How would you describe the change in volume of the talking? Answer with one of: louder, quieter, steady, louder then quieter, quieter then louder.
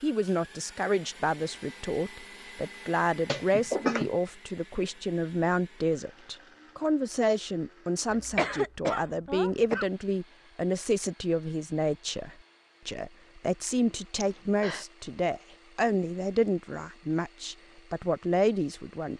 steady.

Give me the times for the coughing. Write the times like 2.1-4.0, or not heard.
3.2-4.1, 8.1-9.8, 14.2-14.8.